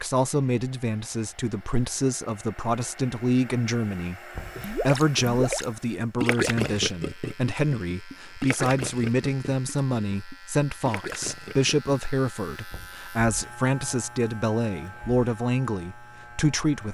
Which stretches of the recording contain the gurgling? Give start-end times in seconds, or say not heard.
4.5-11.9.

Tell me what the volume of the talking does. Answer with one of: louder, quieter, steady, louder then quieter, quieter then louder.
steady.